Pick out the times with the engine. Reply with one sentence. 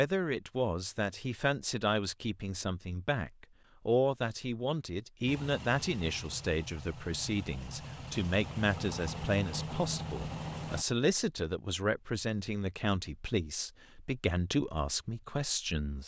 You can hear the engine from 5.2 to 10.8 s.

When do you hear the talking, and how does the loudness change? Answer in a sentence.
The talking can be heard from 0.0 to 16.0 s, at a steady volume.